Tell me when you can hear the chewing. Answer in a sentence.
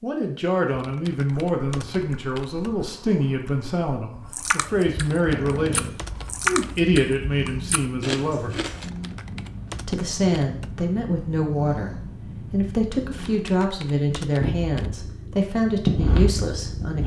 You can hear the chewing from 1.3 to 8.9 s.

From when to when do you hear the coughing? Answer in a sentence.
The coughing can't be heard in this clip.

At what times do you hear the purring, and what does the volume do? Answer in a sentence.
The purring can be heard from 5.2 to 17.0 s, getting louder.